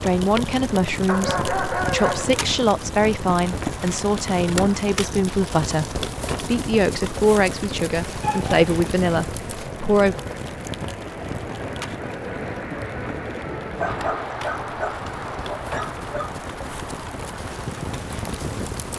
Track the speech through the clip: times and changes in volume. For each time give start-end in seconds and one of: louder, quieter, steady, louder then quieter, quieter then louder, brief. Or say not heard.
0.0-10.2 steady.